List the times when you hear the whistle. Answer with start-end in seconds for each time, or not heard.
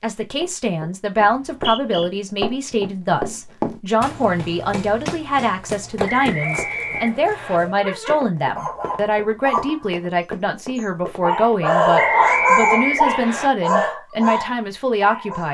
1.2-2.1, 6.0-7.6, 11.9-13.5.